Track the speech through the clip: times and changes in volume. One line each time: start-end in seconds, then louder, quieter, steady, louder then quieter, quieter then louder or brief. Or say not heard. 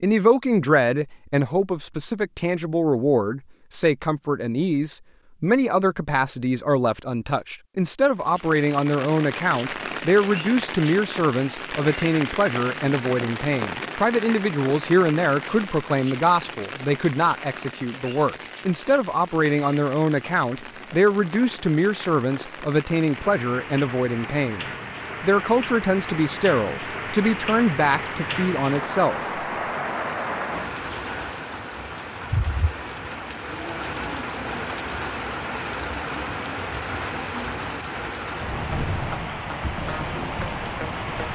0.0-29.2 steady.